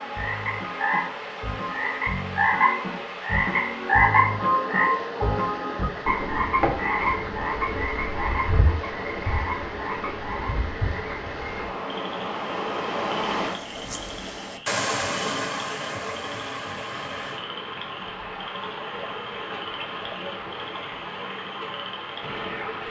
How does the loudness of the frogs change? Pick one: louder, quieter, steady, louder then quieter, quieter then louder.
quieter.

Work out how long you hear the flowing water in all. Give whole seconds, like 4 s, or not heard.
23 s.